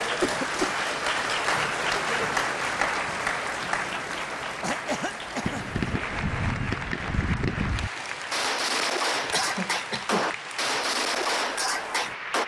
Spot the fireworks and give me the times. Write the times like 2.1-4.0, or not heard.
5.4-12.4.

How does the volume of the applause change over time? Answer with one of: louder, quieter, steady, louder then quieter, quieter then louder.
quieter.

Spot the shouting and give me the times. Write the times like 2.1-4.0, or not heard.
not heard.